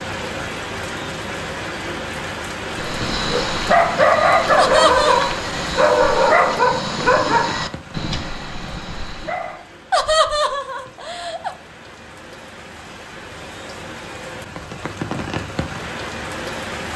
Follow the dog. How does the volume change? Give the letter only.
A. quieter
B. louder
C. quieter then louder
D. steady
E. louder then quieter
A.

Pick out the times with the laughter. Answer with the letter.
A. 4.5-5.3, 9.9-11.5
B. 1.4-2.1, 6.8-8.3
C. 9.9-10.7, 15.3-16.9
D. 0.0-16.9
A.